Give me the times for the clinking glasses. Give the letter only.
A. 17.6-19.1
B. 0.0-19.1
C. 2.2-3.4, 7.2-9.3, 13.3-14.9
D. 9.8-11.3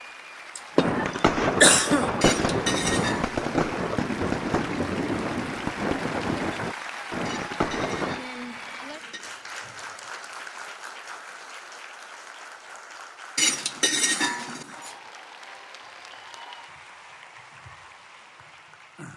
C.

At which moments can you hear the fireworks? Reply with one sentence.
You can hear the fireworks from 0.8 to 8.2 s.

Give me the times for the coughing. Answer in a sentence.
You can hear the coughing from 0.6 to 2.1 s.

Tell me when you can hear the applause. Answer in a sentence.
You can hear the applause from 0.0 to 19.1 s.